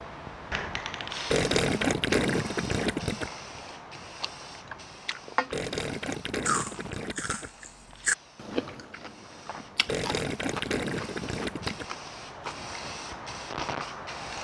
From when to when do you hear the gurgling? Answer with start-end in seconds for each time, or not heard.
1.3-3.3, 5.5-7.5, 9.8-11.8.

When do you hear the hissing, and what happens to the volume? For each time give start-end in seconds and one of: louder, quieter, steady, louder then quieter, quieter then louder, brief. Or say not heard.
0.0-14.4 quieter then louder.